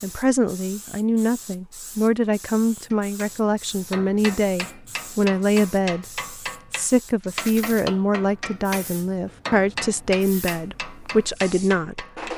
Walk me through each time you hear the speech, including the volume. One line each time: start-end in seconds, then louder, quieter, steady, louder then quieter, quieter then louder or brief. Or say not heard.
0.0-12.1 steady.